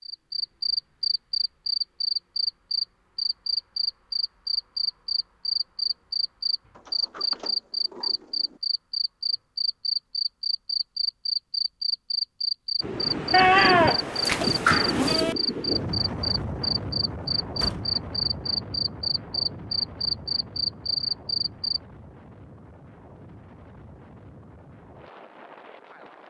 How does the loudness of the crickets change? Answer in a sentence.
The loudness of the crickets stays about the same.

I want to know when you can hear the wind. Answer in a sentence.
The wind can be heard from 12.8 to 26.2 s.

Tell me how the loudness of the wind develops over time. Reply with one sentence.
The volume of the wind goes down.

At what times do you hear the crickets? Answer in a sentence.
You can hear the crickets from 0.0 to 21.8 s.